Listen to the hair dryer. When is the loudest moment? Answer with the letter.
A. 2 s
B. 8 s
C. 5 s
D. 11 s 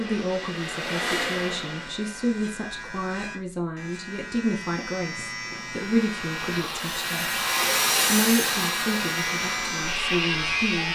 B.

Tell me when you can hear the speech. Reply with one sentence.
The speech can be heard from 0.0 to 7.4 s and from 8.1 to 10.9 s.